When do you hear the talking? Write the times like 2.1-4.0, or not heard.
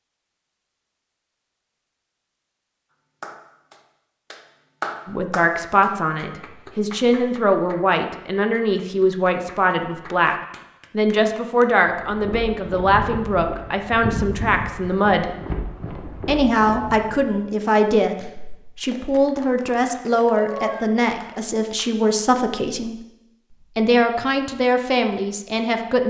5.0-10.3, 10.9-15.3, 16.2-26.0.